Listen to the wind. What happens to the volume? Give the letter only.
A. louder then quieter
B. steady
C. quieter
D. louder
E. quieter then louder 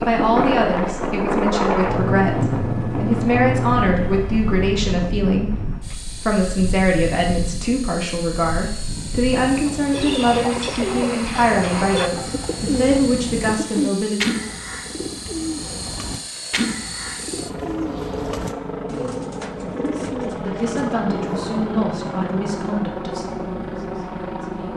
C.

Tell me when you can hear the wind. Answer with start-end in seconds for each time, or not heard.
0.0-13.6.